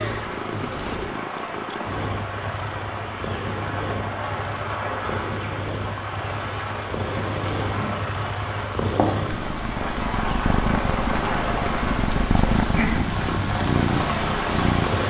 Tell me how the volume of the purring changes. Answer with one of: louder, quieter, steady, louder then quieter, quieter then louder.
louder.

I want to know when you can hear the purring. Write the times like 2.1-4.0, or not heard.
0.0-15.0.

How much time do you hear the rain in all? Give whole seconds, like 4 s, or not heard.
15 s.